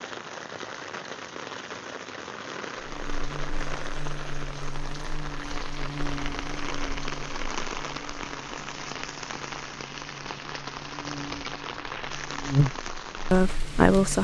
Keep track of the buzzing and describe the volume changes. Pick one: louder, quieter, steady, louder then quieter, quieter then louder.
quieter then louder.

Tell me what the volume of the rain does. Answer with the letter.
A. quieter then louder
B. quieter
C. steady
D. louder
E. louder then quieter
C.